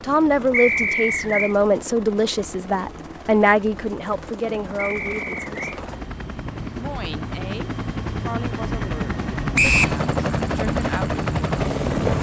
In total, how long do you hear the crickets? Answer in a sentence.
The crickets can't be heard in this clip.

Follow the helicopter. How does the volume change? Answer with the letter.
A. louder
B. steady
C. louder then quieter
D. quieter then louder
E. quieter
A.